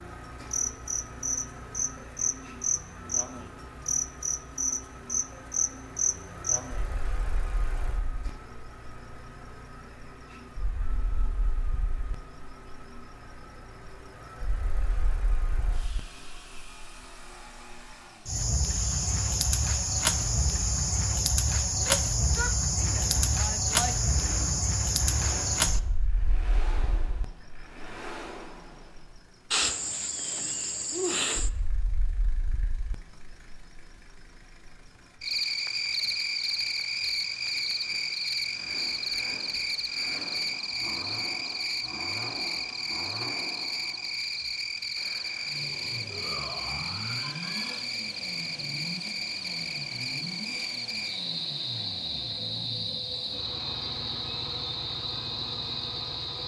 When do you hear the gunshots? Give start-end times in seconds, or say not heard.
not heard.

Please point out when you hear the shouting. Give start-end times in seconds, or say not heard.
21.8-24.1, 46.1-47.9.